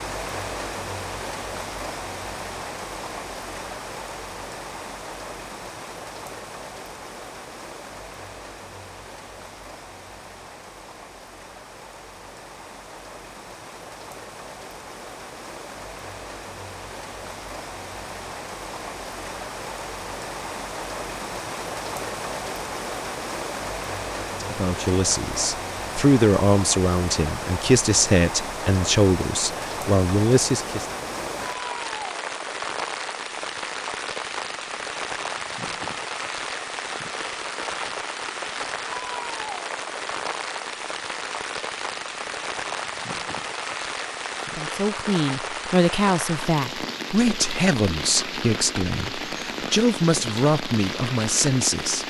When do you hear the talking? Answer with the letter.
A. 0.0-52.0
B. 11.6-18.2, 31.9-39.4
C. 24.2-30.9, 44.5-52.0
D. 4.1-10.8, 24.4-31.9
C.